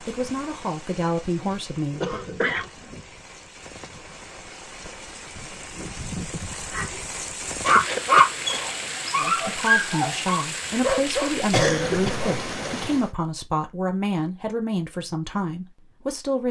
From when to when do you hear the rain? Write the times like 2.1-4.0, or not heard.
0.0-13.1.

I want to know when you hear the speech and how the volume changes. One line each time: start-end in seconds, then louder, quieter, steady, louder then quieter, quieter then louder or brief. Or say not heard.
0.0-2.2 brief
9.2-16.4 steady.